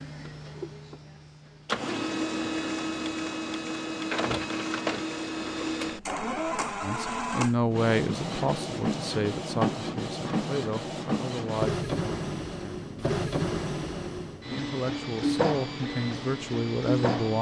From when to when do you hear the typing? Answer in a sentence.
The typing can't be heard in this clip.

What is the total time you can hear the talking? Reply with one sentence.
The talking can be heard for 9 seconds in total.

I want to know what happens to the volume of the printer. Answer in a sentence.
The volume of the printer stays about the same.